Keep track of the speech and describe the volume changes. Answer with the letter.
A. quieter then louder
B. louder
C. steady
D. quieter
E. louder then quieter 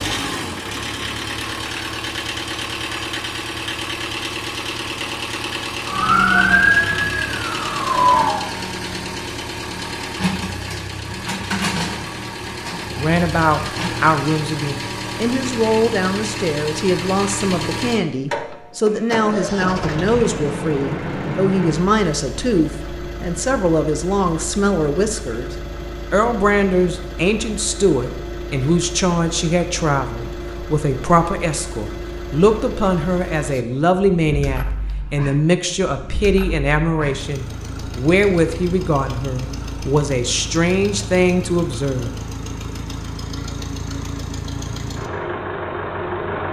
C.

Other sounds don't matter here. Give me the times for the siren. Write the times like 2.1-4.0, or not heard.
5.8-8.4.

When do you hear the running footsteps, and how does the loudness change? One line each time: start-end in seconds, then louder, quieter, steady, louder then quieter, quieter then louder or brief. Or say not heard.
not heard.